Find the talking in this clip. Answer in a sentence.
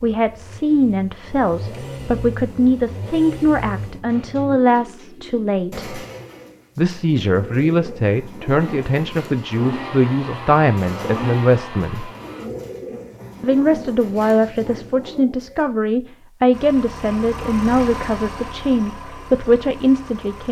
The talking can be heard from 0.0 to 6.0 s, from 6.8 to 12.1 s and from 13.4 to 20.4 s.